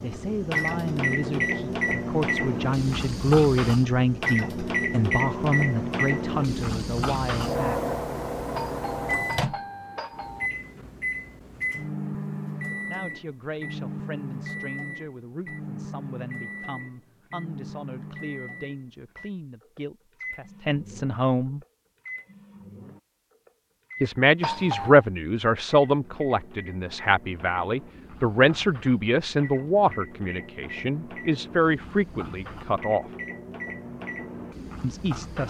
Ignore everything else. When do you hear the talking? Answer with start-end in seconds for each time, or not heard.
0.0-7.8, 12.8-21.6, 24.0-33.0, 34.8-35.4.